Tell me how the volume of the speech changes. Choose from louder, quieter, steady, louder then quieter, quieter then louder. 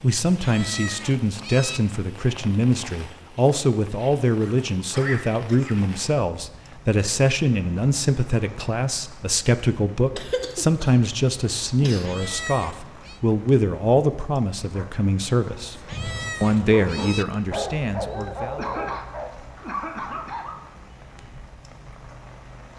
steady.